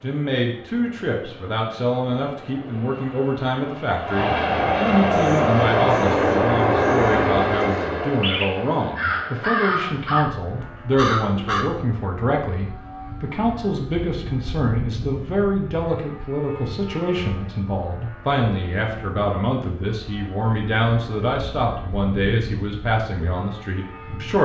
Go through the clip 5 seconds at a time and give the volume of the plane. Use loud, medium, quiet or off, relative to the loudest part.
medium, loud, quiet, quiet, quiet.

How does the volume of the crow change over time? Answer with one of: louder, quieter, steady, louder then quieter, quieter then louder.
louder.